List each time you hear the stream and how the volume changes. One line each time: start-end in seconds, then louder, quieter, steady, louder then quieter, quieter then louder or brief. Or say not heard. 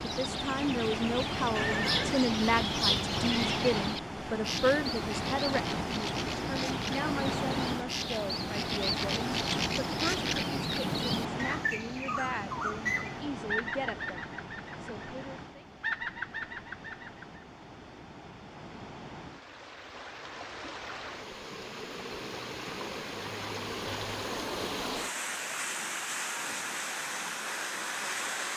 0.0-28.5 quieter then louder.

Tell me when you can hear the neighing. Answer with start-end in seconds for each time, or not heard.
1.6-2.3.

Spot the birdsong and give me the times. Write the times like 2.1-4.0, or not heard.
0.0-17.4.